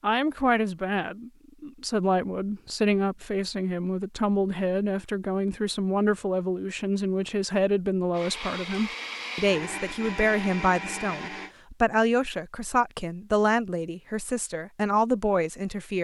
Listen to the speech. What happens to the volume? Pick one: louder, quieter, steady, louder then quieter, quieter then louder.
steady.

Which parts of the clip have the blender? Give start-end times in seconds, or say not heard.
8.1-11.6.